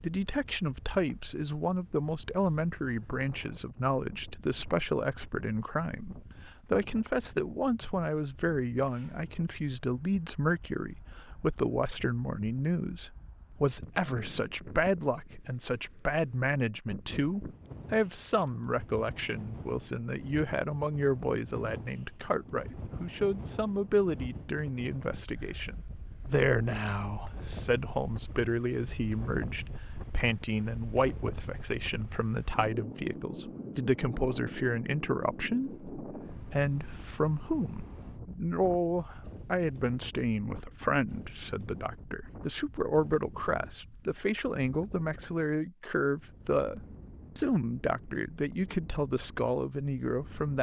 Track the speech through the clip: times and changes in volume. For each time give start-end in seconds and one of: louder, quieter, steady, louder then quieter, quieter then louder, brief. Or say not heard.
0.0-50.5 steady.